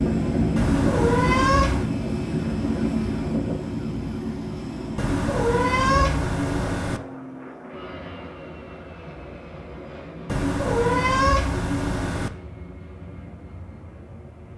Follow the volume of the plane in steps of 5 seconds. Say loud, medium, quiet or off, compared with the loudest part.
loud, medium, quiet.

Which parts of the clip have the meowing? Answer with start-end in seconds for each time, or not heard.
0.6-1.9, 5.0-7.0, 10.2-12.3.